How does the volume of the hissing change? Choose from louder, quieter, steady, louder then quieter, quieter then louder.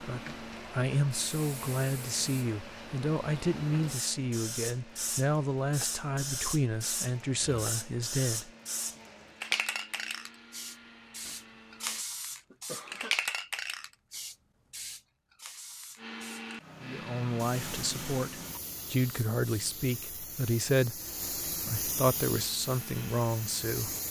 louder then quieter.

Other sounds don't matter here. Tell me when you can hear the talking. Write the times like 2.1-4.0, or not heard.
0.0-8.5, 16.8-23.9.